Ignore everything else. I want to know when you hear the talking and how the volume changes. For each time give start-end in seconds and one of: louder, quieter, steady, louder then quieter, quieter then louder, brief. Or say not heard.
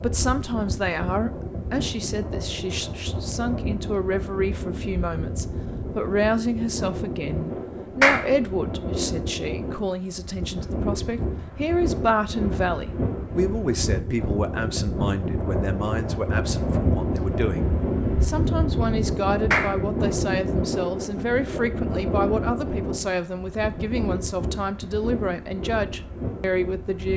0.0-27.1 steady.